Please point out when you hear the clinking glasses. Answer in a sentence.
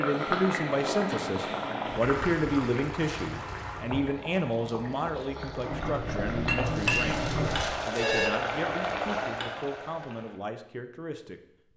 You can hear the clinking glasses from 5.7 to 7.7 s.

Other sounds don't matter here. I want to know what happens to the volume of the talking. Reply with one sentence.
The loudness of the talking goes down.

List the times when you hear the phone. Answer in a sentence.
The phone can be heard from 6.7 to 8.3 s.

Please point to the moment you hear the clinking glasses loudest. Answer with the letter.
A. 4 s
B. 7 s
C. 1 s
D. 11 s
B.